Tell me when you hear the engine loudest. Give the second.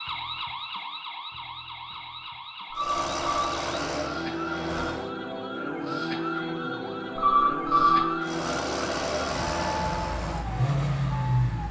11 s.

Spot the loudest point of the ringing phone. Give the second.
8 s.